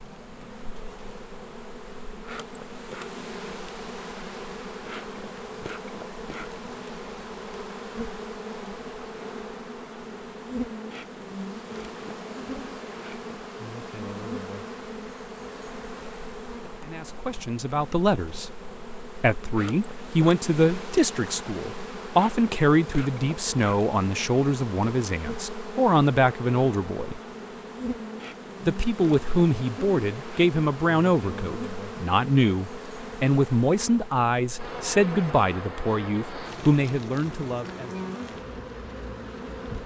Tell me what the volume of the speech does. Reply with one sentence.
The loudness of the speech stays about the same.